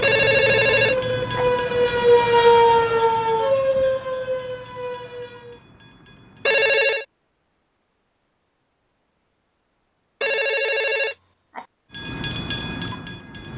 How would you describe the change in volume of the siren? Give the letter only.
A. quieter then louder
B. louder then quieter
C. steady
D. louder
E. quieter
B.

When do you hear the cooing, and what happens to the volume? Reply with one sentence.
The cooing can't be heard in this clip.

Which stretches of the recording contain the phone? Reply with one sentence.
The phone can be heard from 0.0 to 1.4 s, from 6.5 to 7.0 s and from 10.2 to 11.7 s.